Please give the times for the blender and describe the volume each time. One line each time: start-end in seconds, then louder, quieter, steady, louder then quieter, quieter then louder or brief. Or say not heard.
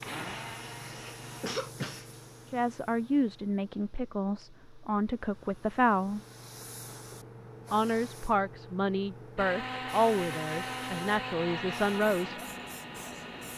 0.0-1.6 brief
9.3-13.5 quieter.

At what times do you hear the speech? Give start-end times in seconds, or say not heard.
2.5-6.2, 7.7-12.3.